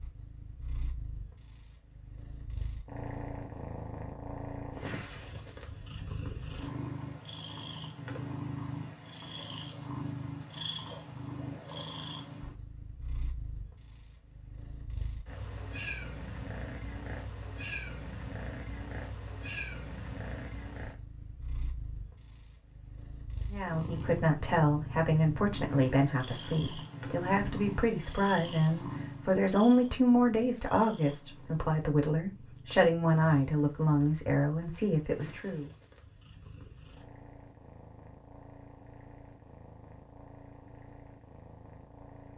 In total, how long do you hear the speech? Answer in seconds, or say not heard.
12 s.